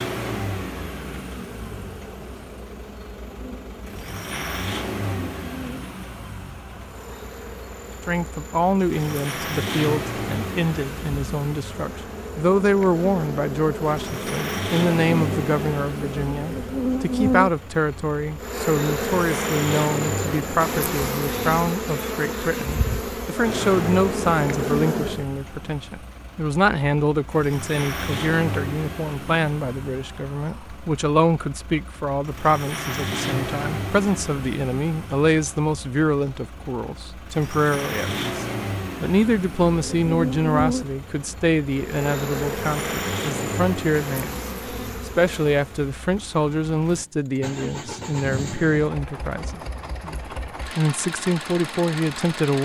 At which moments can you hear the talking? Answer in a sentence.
You can hear the talking from 8.1 to 52.6 s.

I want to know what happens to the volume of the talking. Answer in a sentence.
The loudness of the talking stays about the same.